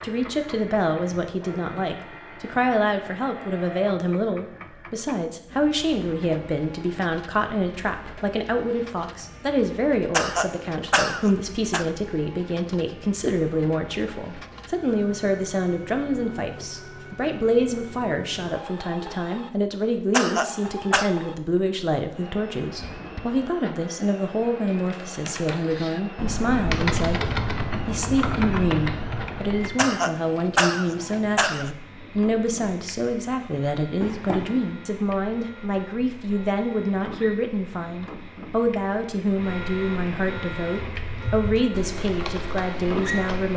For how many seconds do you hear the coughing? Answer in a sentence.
The coughing can be heard for 5 seconds in total.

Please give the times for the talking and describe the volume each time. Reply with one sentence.
The talking can be heard from 0.0 to 43.5 s, at a steady volume.